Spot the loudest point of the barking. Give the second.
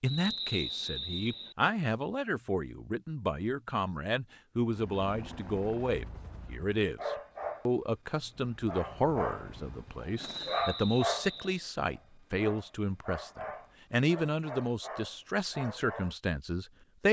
11 s.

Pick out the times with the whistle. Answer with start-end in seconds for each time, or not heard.
0.1-1.6, 10.2-11.6.